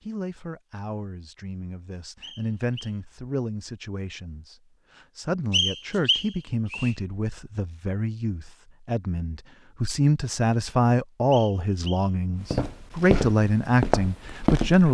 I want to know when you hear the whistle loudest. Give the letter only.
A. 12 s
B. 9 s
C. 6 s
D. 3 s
C.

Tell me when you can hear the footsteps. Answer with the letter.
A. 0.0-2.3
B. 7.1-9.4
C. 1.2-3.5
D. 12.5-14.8
D.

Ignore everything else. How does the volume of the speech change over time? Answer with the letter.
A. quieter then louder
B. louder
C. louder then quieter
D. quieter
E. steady
B.